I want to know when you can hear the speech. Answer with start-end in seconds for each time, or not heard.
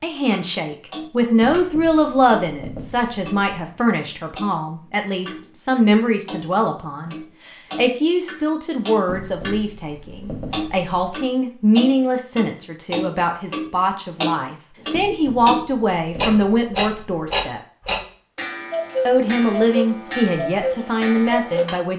0.0-7.2, 7.8-17.6, 19.1-21.9.